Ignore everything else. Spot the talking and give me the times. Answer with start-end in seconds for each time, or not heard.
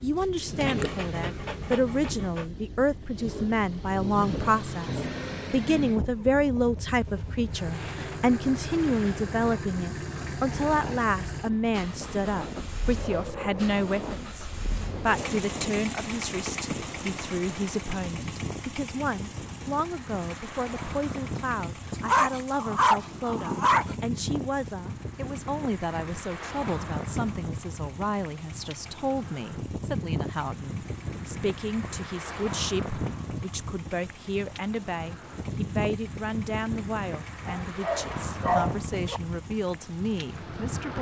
0.0-40.9.